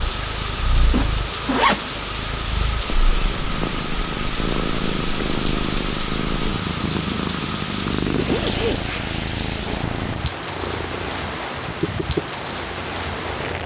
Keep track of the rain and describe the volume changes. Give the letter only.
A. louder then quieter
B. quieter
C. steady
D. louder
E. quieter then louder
C.